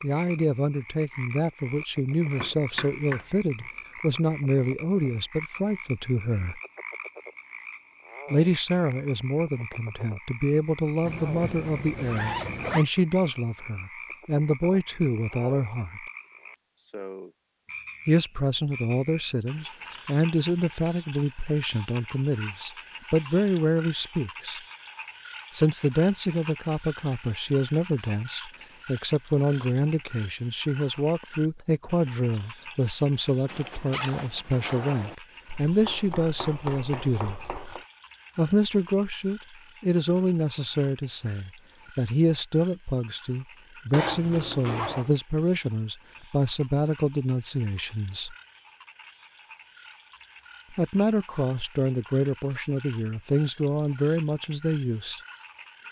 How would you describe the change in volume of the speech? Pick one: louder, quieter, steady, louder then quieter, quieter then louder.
steady.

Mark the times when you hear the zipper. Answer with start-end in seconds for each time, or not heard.
11.0-12.8, 33.5-35.1, 43.9-45.1.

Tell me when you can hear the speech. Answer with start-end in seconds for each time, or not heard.
0.0-6.6, 8.3-16.0, 18.1-24.6, 25.5-37.4, 38.4-48.4, 50.7-55.2.